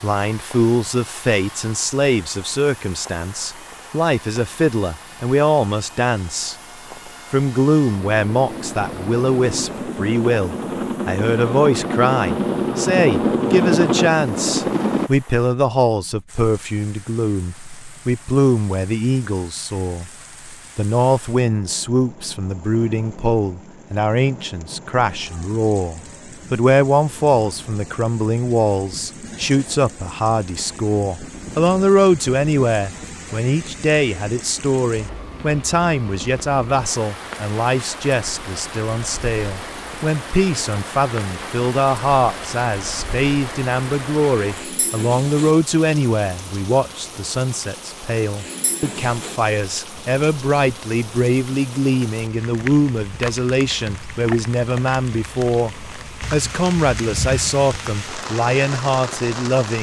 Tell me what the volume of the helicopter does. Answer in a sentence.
The loudness of the helicopter goes up.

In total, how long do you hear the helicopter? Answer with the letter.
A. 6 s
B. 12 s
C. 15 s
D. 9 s
C.